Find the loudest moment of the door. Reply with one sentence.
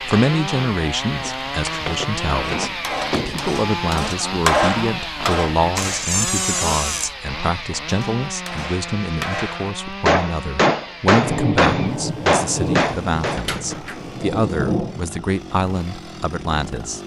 The loudest moment of the door is at 6 seconds.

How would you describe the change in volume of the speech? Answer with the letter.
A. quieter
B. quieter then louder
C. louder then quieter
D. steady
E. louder
D.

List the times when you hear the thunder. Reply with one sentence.
The thunder can be heard from 11.2 to 14.9 s.